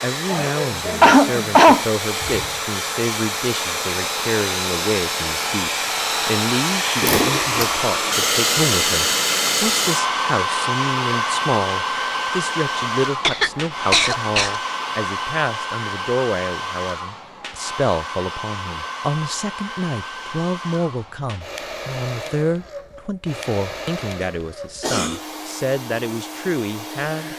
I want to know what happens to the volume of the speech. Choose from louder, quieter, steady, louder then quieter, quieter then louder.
steady.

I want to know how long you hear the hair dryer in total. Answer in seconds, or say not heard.
27 s.